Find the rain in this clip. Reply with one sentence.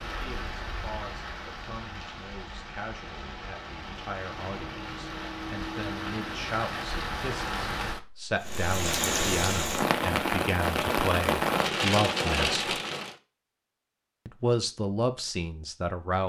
The rain can be heard from 0.0 to 13.2 s.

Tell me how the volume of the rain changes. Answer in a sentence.
The loudness of the rain goes up.